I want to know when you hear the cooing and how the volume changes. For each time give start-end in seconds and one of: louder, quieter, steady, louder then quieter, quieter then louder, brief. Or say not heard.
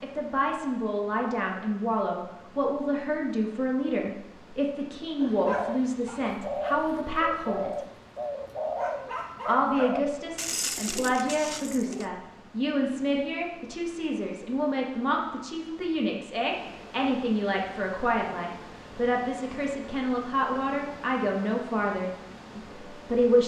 5.2-12.1 steady.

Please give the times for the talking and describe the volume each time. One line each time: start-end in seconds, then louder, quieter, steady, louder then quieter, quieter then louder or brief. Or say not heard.
0.0-7.8 steady
9.4-23.4 steady.